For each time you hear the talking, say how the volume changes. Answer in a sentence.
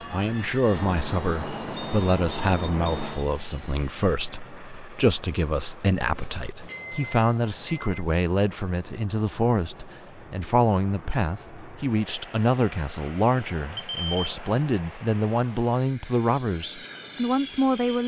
You can hear the talking from 0.1 to 18.0 s, at a steady volume.